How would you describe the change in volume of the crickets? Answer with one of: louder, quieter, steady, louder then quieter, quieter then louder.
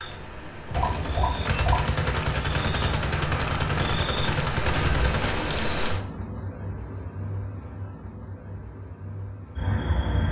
louder then quieter.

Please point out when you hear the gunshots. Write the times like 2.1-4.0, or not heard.
0.7-5.5.